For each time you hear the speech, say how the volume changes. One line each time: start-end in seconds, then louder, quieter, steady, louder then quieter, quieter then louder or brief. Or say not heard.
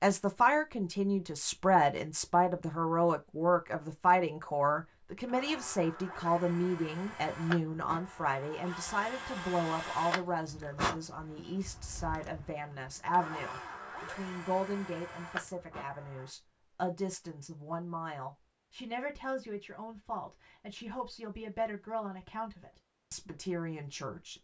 0.0-24.3 quieter.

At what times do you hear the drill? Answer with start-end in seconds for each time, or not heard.
5.2-16.3.